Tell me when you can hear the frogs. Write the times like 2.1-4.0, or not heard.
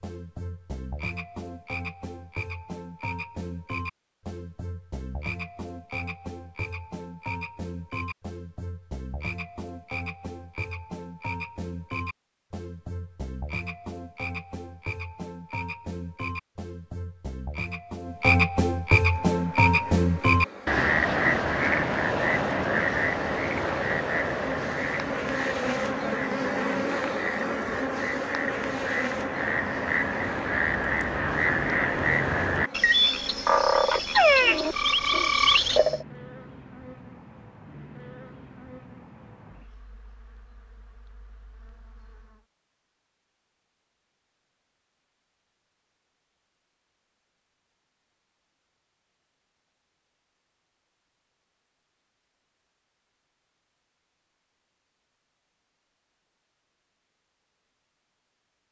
0.0-36.0.